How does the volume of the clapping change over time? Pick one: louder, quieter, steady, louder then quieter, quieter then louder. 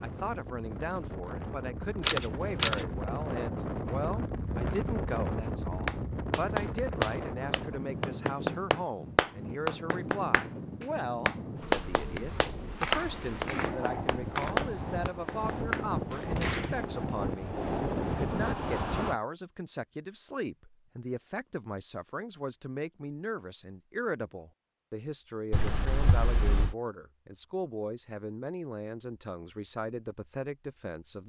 steady.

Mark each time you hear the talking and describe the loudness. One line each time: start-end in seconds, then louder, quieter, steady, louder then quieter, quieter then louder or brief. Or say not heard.
0.0-31.2 steady.